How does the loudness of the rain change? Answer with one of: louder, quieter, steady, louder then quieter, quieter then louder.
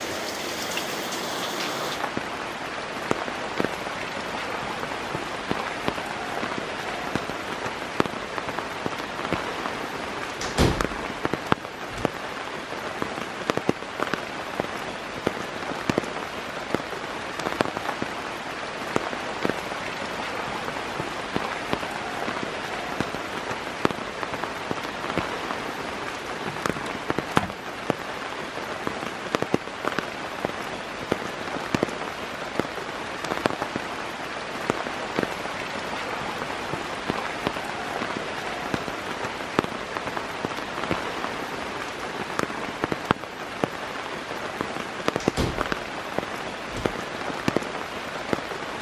steady.